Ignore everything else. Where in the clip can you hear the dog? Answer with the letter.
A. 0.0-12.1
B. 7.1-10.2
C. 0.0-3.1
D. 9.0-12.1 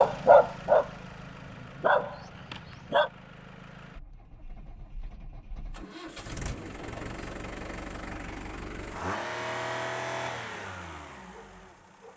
C.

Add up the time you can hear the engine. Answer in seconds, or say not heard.
12 s.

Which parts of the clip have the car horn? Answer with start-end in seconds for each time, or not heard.
not heard.